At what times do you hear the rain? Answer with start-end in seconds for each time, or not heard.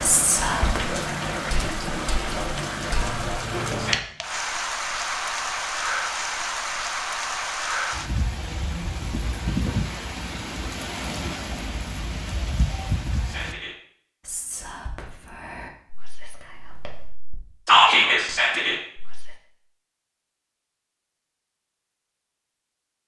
0.0-13.6.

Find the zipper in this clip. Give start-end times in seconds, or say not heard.
not heard.